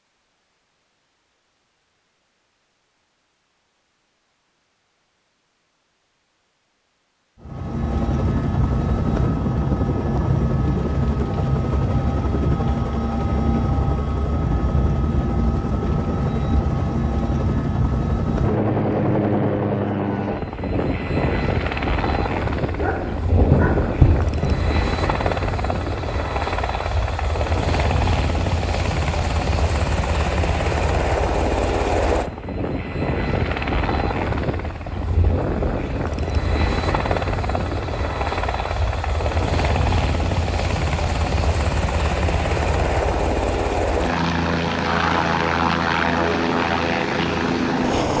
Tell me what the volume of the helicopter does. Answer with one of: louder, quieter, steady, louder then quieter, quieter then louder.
steady.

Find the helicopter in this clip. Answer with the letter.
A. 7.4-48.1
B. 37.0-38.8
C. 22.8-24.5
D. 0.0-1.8
A.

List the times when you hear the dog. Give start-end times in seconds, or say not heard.
22.8-24.5.